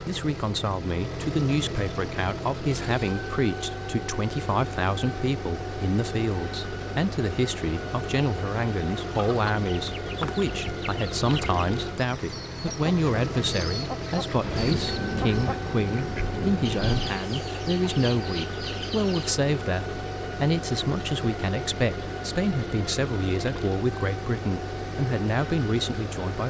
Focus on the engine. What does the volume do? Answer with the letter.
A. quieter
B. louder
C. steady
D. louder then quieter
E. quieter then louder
C.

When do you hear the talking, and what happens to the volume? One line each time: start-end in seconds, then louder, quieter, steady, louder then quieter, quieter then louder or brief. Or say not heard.
0.0-26.4 steady.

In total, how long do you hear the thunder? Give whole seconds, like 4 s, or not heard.
3 s.